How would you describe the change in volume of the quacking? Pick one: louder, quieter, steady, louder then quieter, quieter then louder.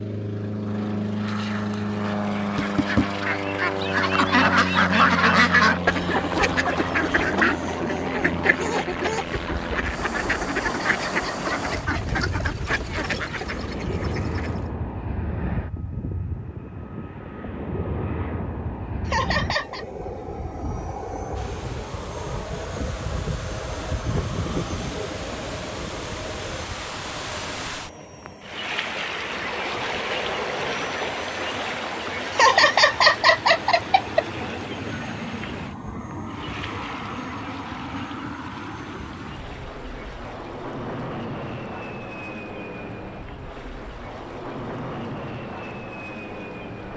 quieter.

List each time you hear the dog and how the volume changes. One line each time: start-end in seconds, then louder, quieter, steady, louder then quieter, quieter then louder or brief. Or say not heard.
not heard.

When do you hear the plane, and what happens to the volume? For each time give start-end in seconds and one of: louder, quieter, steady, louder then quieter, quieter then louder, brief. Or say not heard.
0.0-46.9 quieter.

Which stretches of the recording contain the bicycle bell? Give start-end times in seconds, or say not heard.
not heard.